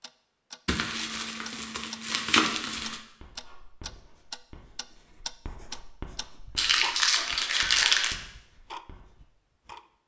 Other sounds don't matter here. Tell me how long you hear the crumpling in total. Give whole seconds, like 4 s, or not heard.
4 s.